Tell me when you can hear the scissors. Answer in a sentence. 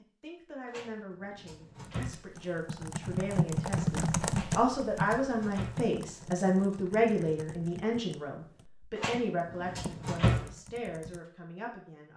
The scissors can't be heard in this clip.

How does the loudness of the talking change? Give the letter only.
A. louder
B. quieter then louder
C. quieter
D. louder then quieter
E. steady
D.